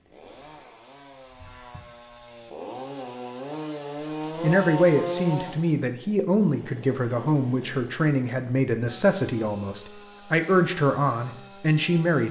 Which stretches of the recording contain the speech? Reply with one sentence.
The speech can be heard from 4.4 to 12.2 s.